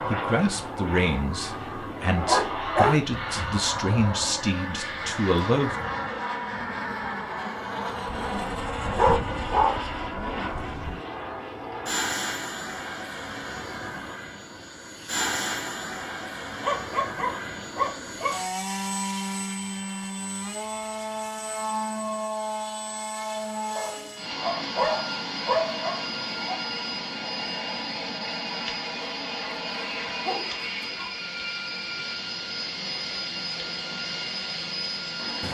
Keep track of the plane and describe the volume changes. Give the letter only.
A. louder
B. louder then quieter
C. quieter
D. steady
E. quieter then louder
D.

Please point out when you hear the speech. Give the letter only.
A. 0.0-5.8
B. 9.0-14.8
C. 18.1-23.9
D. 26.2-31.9
A.